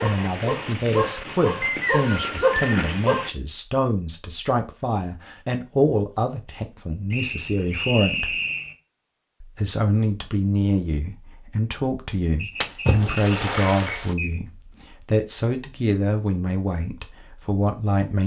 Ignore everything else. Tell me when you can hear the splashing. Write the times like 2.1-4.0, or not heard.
12.6-14.2.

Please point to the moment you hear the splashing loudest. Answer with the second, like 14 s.
13 s.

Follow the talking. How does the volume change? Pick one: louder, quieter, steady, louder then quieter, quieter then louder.
steady.